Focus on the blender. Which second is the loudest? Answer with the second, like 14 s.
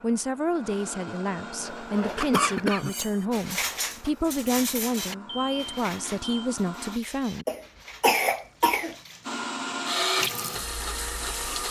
10 s.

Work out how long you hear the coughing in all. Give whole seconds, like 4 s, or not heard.
2 s.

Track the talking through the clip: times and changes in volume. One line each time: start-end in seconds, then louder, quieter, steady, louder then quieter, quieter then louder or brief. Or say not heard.
0.0-7.5 steady.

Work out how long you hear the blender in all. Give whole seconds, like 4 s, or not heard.
9 s.